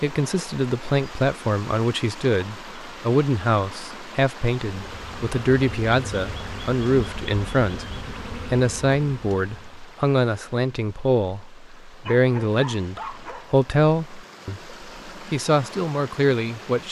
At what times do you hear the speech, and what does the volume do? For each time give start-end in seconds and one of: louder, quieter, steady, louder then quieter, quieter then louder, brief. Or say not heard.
0.0-16.8 steady.